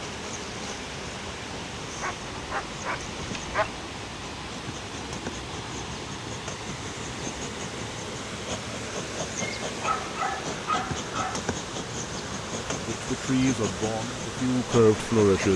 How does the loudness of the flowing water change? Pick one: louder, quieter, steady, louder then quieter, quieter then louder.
steady.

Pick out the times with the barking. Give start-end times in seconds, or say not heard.
2.0-3.9, 9.6-11.3.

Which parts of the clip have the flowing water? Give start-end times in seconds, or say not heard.
0.0-15.5.